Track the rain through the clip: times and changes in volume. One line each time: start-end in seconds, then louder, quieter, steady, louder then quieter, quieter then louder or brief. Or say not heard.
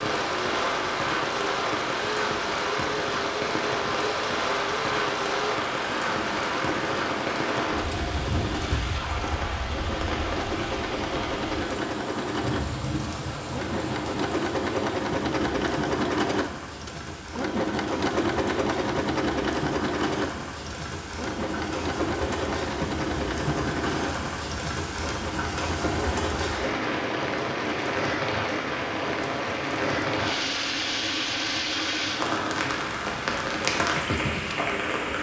0.0-35.1 quieter then louder.